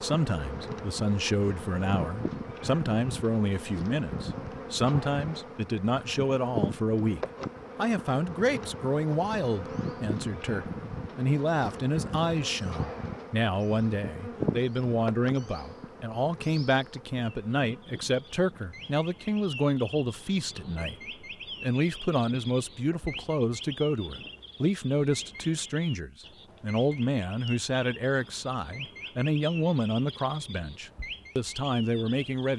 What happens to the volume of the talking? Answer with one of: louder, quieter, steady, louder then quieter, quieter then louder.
steady.